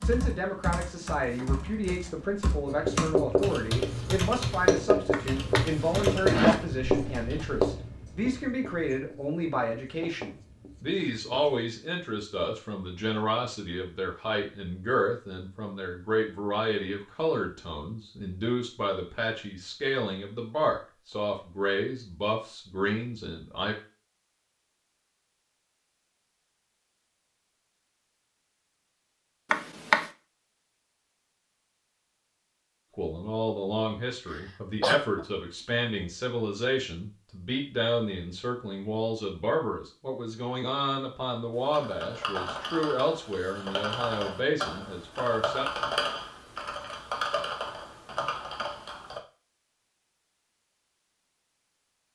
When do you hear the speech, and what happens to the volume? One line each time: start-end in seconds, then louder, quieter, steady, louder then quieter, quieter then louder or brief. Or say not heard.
0.0-23.8 steady
33.0-45.6 steady.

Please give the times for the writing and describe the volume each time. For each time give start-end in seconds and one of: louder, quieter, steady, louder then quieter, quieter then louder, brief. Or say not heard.
2.6-11.6 quieter.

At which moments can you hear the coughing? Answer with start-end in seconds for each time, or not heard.
34.3-35.2.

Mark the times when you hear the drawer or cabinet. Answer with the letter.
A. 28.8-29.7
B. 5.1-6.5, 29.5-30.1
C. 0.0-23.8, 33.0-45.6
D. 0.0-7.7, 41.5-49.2
B.